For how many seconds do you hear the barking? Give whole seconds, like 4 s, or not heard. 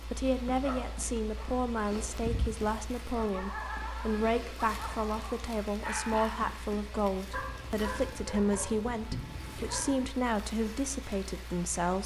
10 s.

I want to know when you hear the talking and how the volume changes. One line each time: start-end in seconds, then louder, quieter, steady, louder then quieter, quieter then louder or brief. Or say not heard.
0.0-12.0 steady.